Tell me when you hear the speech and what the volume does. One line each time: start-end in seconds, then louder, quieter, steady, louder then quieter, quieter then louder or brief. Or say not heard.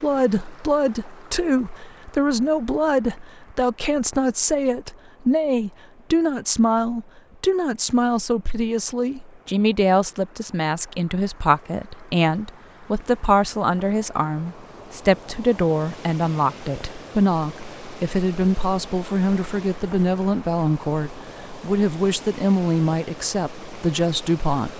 0.0-24.7 steady.